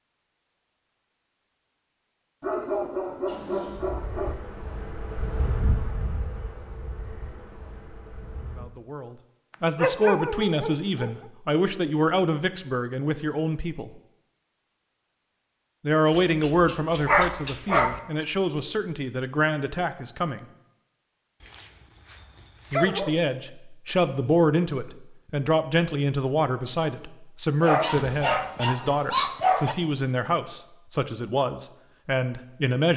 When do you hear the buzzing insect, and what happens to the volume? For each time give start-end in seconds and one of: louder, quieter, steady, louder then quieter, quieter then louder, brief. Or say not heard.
3.2-8.7 louder then quieter.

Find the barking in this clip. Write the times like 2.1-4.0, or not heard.
2.4-4.3, 9.8-11.2, 16.1-18.0, 21.4-23.1, 27.6-29.8.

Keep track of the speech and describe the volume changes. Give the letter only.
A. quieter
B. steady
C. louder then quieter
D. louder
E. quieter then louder
B.